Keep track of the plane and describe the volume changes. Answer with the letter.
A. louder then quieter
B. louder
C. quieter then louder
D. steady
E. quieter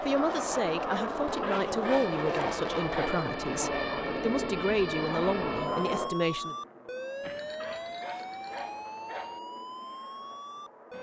E.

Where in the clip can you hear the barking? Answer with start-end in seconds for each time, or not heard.
1.4-3.2, 7.6-9.4.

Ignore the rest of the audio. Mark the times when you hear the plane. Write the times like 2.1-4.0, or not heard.
0.0-10.9.